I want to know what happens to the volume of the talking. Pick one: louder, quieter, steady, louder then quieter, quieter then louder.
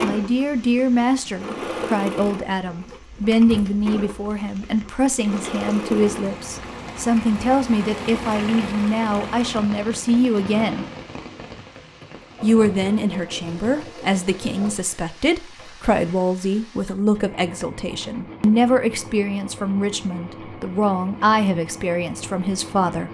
steady.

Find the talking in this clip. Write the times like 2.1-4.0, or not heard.
0.0-10.8, 12.4-23.0.